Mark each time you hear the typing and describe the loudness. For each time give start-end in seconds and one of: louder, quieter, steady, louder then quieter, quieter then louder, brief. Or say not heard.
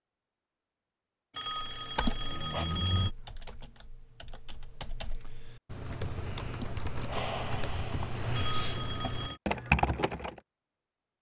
1.6-10.4 louder.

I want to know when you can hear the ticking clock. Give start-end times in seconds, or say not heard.
not heard.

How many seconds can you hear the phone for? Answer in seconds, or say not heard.
3 s.